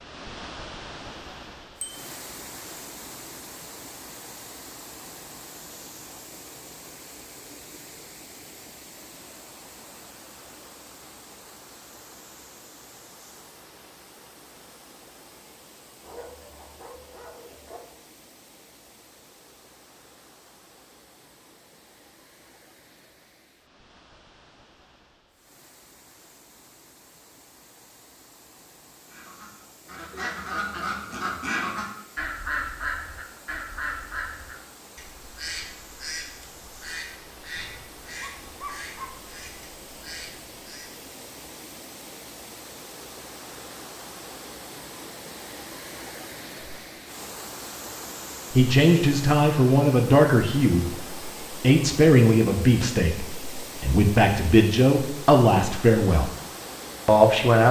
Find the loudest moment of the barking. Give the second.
39 s.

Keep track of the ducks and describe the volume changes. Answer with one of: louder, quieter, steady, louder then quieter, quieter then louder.
quieter.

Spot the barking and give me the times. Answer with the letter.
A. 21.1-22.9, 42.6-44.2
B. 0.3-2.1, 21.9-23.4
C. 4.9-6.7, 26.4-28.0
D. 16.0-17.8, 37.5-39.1
D.